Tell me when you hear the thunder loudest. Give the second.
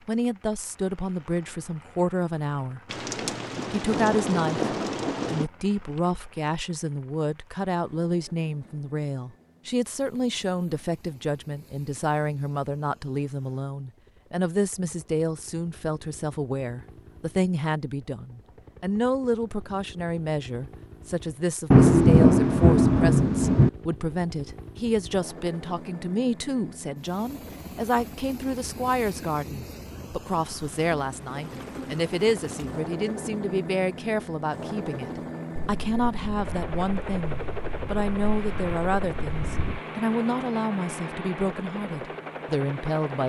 22 s.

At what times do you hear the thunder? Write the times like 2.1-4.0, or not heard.
2.9-5.5, 21.7-23.7, 35.5-39.8.